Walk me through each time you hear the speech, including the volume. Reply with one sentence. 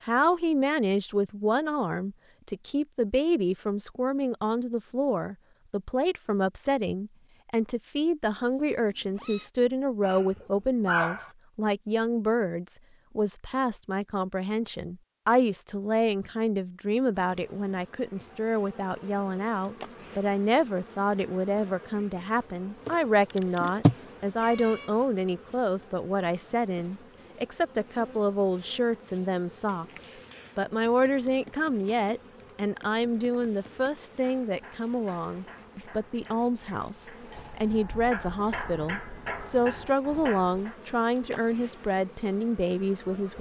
You can hear the speech from 0.1 to 43.3 s, at a steady volume.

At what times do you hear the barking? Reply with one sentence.
You can hear the barking from 10.0 to 11.3 s.